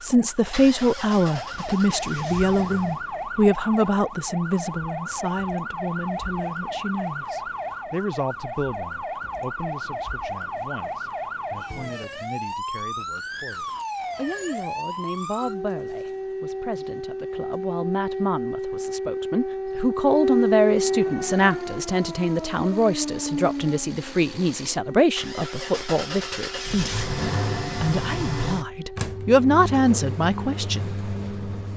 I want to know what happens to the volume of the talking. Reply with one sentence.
The volume of the talking goes down, then up.